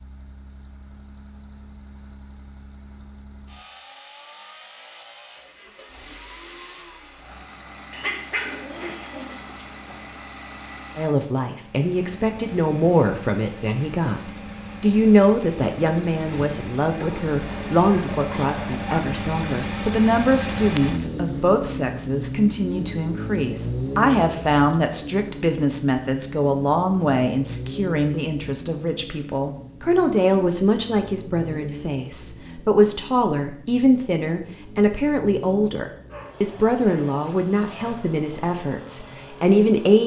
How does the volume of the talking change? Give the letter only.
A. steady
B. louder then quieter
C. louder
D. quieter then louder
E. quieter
A.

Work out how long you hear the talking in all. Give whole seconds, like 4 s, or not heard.
29 s.